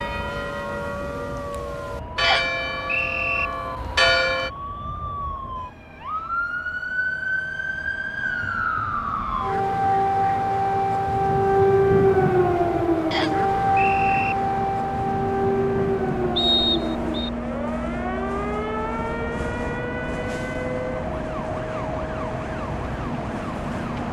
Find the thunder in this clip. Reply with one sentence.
The thunder can't be heard in this clip.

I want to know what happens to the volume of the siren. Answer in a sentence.
The volume of the siren goes up, then down.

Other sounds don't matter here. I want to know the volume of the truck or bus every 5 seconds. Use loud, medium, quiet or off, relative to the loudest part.
medium, quiet, medium, loud, loud.